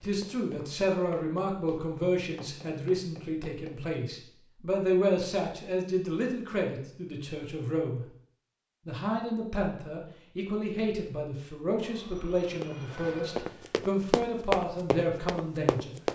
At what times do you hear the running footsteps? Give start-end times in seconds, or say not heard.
0.0-4.0, 12.6-16.1.